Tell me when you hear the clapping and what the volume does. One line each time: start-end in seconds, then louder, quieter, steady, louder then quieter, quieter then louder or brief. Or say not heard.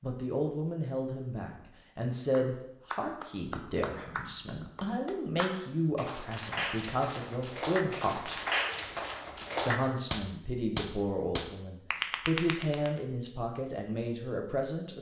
2.3-12.9 louder.